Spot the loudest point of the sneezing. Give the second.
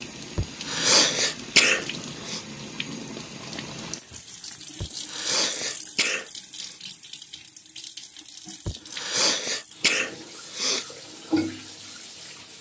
2 s.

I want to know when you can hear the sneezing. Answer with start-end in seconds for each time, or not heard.
0.3-2.4, 4.8-6.8, 8.7-10.8.